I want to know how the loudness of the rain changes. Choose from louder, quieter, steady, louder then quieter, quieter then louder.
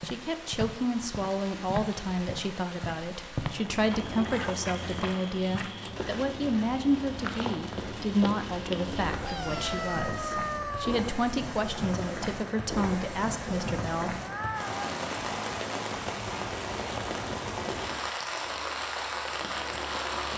louder.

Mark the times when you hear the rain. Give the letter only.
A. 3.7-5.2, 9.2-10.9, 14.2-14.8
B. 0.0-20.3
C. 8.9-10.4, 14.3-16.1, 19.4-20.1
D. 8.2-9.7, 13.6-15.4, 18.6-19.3
B.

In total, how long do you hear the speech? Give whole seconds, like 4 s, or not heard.
14 s.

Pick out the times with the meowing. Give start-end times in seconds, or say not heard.
3.7-5.2, 9.2-10.9, 14.2-14.8.